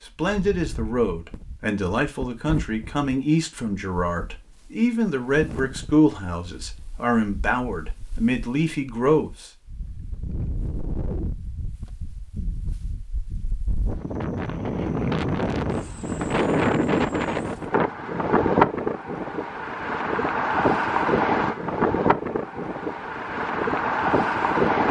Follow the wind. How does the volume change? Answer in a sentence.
The loudness of the wind goes up.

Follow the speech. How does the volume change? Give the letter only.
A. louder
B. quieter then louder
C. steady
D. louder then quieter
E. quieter
C.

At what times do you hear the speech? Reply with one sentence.
You can hear the speech from 0.0 to 9.5 s.